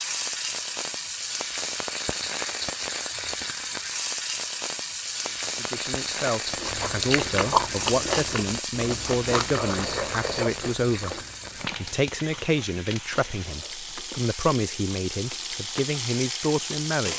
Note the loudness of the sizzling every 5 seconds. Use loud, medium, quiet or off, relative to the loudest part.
loud, loud, medium, loud.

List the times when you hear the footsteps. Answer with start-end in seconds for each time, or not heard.
not heard.